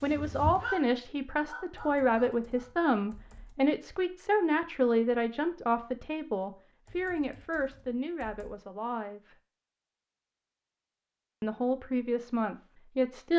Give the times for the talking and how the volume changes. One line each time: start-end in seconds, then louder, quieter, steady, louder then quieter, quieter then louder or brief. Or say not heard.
0.0-9.3 quieter
11.4-13.3 brief.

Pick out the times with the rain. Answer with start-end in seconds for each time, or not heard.
not heard.